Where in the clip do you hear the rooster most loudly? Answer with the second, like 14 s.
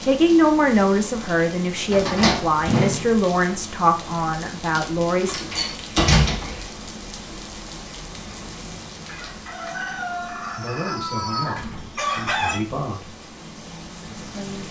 12 s.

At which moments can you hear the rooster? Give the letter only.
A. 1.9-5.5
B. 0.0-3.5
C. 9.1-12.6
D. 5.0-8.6
C.